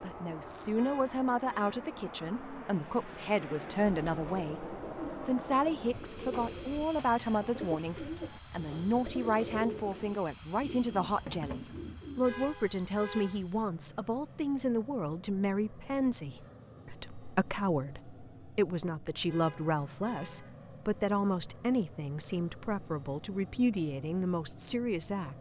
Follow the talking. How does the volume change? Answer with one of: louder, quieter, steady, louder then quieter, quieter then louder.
steady.